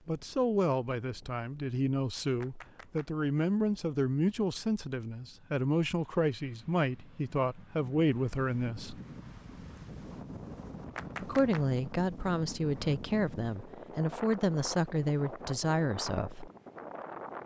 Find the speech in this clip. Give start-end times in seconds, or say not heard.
0.1-9.0, 11.2-16.5.